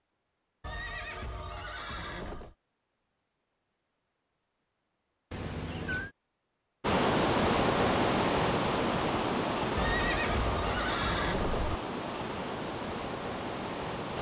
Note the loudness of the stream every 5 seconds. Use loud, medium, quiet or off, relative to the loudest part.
off, loud, medium.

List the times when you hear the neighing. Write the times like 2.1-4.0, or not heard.
0.6-2.5, 5.3-6.1, 9.8-11.8.